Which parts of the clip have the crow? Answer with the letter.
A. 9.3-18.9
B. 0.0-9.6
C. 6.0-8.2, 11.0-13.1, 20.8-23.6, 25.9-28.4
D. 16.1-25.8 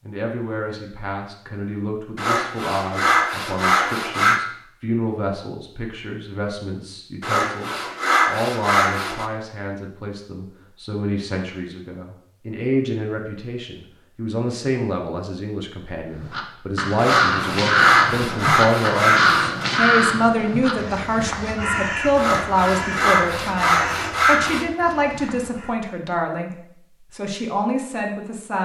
D.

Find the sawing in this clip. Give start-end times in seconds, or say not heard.
2.1-4.5, 7.2-9.2, 16.9-19.8, 22.1-24.6.